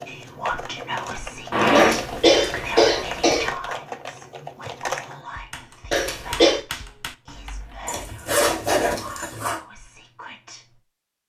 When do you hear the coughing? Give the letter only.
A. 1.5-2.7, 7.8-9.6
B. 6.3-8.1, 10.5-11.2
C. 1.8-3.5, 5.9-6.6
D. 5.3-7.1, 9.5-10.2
C.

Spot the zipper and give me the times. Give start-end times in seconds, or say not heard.
1.5-2.7, 7.8-9.6.